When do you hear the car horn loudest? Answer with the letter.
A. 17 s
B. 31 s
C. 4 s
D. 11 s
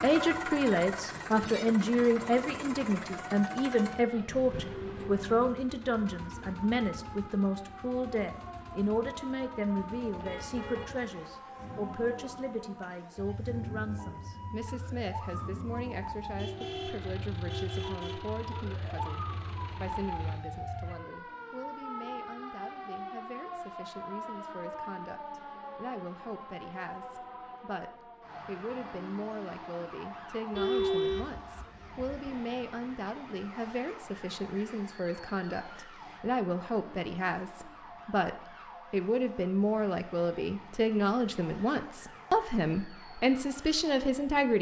B.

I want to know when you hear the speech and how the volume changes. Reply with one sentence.
The speech can be heard from 0.0 to 44.5 s, getting quieter then louder.